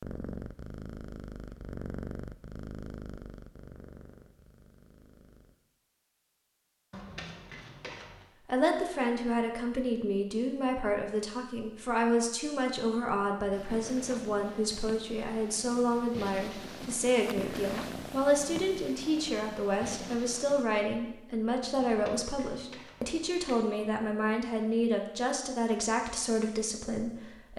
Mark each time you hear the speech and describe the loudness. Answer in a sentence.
The speech can be heard from 8.4 to 27.5 s, at a steady volume.